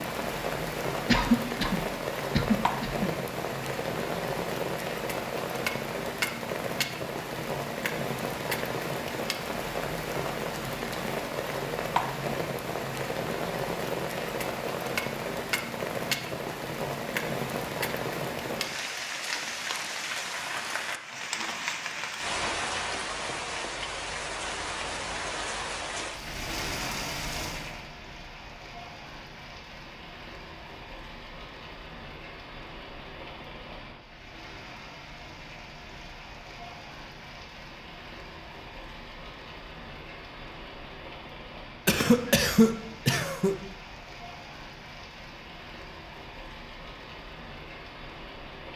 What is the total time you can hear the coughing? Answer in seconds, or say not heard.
4 s.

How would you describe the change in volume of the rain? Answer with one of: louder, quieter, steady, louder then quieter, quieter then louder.
quieter.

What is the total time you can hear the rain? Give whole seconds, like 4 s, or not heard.
49 s.